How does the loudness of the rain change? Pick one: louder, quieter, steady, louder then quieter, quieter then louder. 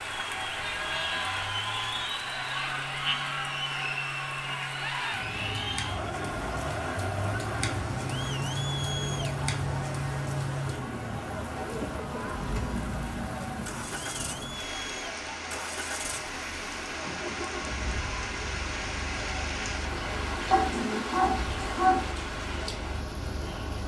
steady.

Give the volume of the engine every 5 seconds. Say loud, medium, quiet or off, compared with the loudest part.
medium, loud, loud, medium, medium.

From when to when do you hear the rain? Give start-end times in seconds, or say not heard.
0.0-23.8.